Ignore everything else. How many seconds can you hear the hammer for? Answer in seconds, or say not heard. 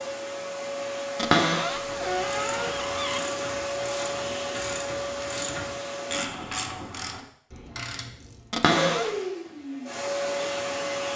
not heard.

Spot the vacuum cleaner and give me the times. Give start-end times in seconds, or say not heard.
0.0-6.2, 8.7-11.1.